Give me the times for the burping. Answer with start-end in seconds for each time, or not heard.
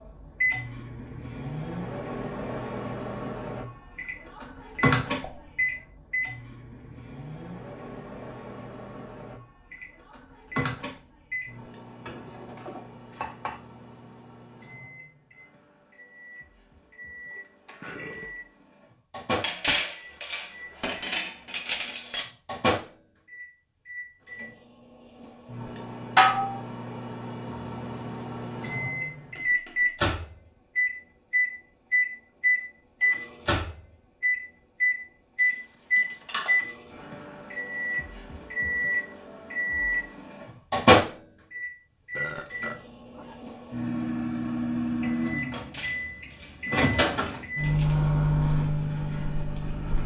17.3-18.4, 42.1-43.5.